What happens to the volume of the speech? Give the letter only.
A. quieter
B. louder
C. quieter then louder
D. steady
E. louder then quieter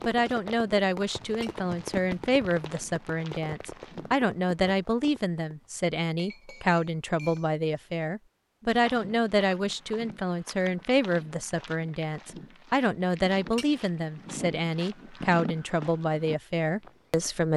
D.